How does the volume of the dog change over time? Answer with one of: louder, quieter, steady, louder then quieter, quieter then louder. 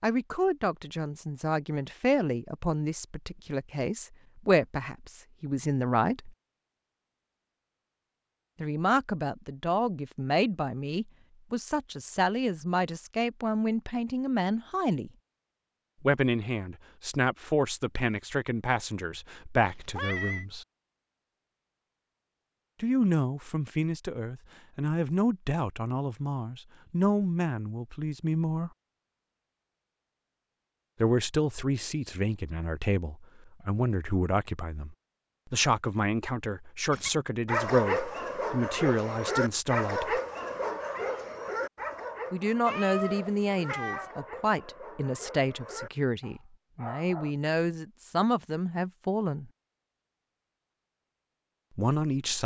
quieter.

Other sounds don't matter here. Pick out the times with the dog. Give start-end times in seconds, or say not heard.
36.9-47.4.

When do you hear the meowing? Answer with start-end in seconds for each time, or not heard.
19.6-20.4, 42.6-44.1.